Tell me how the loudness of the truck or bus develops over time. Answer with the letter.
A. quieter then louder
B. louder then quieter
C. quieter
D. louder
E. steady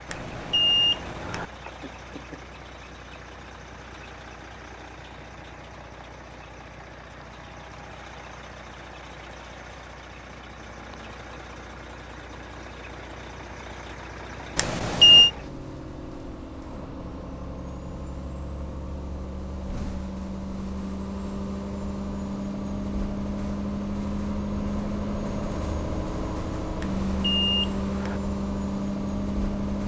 D.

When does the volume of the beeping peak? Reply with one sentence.
The volume of the beeping peaks at 15 seconds.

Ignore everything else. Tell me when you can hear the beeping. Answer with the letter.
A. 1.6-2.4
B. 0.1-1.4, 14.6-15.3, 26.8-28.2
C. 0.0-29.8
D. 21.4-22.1
B.